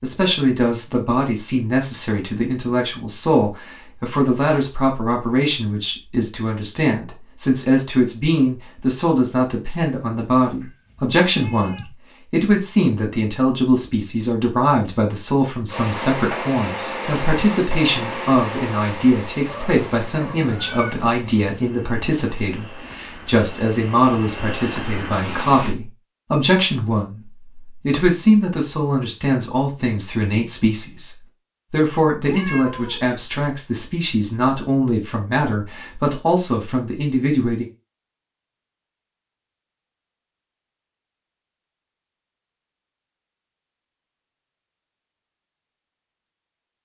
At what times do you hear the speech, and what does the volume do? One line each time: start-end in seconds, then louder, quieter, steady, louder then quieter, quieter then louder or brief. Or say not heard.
0.0-37.6 steady.